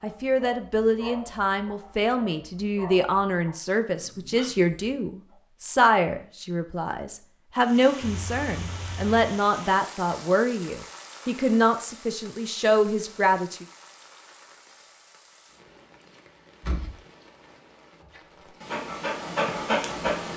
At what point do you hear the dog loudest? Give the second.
20 s.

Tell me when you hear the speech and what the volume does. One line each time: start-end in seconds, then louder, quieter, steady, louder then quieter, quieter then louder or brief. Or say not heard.
0.0-13.7 steady.